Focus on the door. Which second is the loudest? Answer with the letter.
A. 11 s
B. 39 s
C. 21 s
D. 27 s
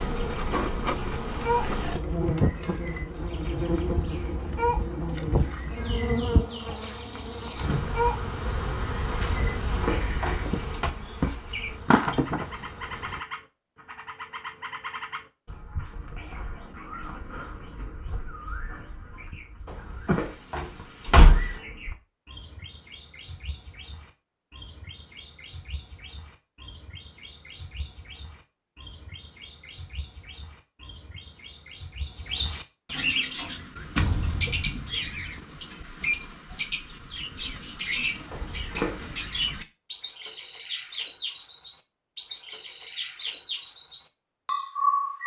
C.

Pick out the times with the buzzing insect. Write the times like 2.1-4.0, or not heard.
0.0-13.2.